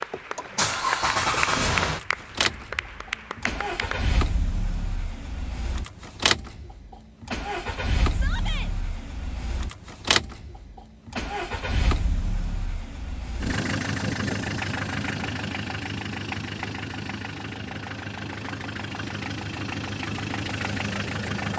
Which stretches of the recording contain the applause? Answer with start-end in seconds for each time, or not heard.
0.0-4.2.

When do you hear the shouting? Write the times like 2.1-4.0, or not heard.
8.1-8.7.